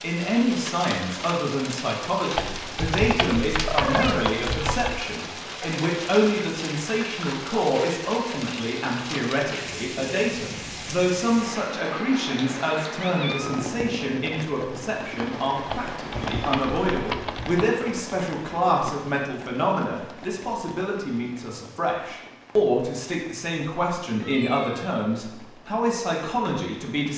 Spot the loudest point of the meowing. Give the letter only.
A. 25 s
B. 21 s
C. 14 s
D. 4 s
D.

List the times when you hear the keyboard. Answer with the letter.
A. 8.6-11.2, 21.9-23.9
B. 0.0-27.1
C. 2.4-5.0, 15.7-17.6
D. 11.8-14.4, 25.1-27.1
C.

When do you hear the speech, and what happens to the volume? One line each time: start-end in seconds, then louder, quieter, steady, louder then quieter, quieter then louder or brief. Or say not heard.
0.0-27.1 steady.